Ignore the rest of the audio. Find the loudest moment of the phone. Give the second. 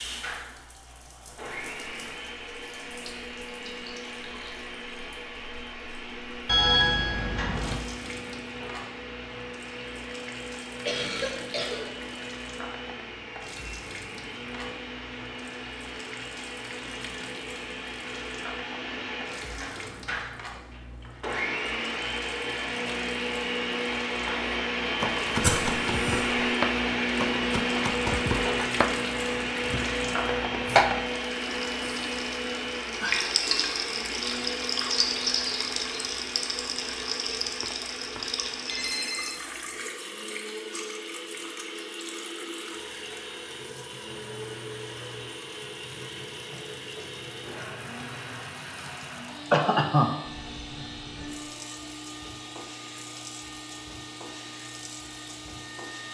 7 s.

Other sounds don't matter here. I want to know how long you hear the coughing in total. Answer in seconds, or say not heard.
3 s.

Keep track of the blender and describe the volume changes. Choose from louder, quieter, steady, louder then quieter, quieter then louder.
louder then quieter.